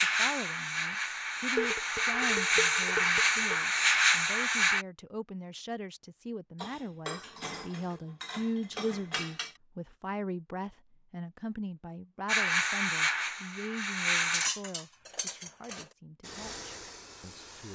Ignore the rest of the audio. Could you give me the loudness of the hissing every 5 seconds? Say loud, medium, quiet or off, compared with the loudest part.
loud, off, loud, quiet.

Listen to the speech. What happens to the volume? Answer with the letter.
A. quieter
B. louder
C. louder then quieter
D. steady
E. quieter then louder
C.